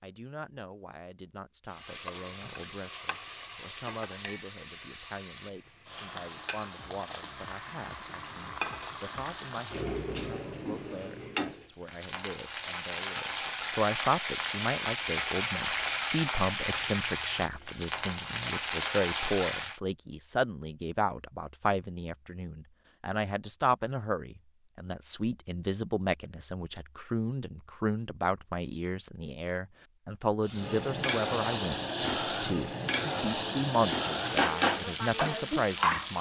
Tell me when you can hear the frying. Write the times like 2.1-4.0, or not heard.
1.6-19.8, 30.4-36.1.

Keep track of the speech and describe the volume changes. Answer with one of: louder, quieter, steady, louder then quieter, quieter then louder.
louder.